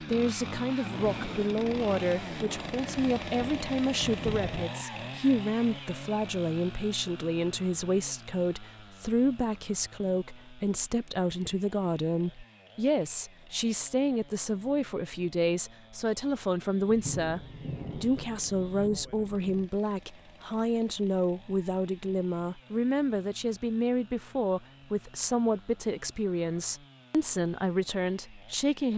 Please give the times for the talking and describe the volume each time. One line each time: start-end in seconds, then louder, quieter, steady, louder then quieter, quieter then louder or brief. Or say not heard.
0.0-28.9 steady.